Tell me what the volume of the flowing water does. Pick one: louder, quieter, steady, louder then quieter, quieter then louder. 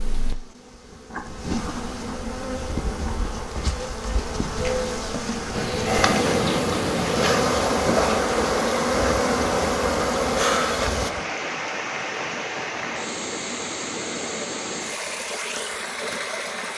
steady.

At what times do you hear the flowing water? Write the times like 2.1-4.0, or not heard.
5.5-16.7.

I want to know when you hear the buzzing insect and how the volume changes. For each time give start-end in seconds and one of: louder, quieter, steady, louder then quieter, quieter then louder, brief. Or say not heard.
0.0-11.1 louder.